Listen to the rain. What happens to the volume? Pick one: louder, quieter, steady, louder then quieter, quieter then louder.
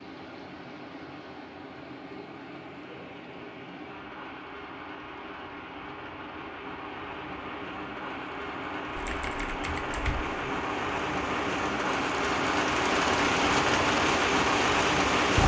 louder.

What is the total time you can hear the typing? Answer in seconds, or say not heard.
2 s.